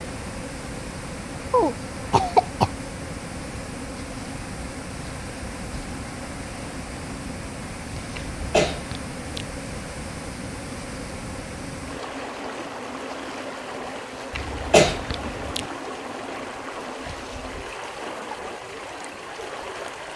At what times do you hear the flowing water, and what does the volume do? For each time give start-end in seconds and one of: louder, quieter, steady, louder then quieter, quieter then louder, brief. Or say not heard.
0.0-20.1 steady.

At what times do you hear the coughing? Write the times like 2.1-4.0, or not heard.
1.5-2.7, 8.2-9.4, 14.3-15.7.